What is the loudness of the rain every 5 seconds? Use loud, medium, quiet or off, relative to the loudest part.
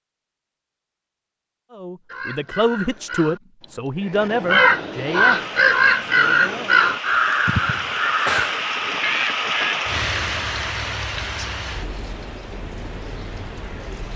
off, loud, loud.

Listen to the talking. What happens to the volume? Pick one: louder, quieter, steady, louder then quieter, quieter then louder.
quieter.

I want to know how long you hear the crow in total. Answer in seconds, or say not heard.
8 s.